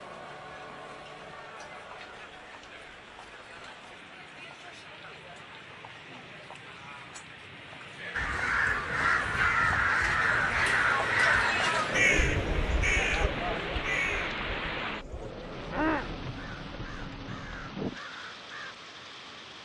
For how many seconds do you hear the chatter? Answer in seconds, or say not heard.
16 s.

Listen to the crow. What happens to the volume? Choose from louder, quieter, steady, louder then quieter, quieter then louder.
quieter.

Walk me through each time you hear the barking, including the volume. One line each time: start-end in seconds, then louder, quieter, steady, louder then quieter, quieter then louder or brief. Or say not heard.
not heard.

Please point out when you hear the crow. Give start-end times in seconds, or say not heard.
8.1-18.8.